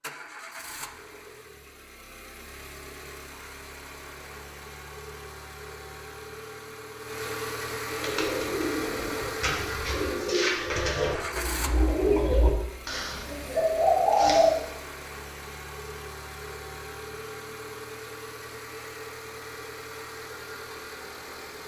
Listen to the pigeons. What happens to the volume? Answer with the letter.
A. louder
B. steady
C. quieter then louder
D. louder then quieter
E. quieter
A.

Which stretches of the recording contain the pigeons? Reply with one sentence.
You can hear the pigeons from 7.9 to 14.7 s.